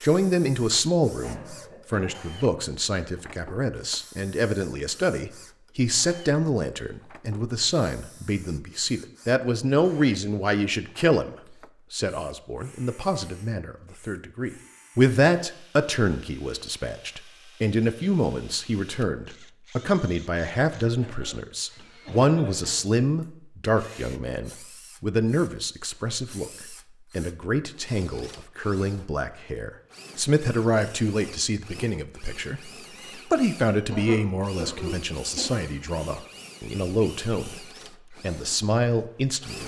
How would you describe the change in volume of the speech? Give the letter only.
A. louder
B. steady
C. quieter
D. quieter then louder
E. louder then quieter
B.